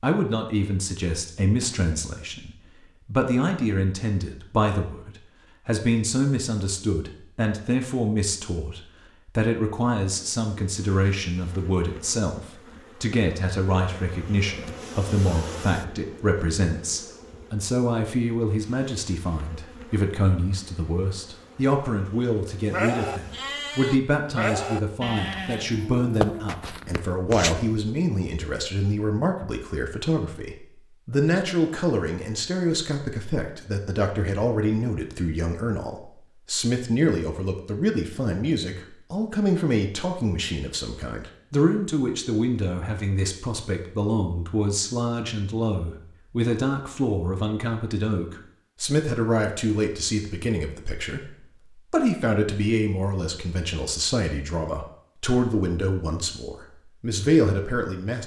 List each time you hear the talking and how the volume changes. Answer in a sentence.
You can hear the talking from 0.0 to 58.2 s, at a steady volume.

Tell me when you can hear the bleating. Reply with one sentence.
You can hear the bleating from 22.6 to 27.6 s.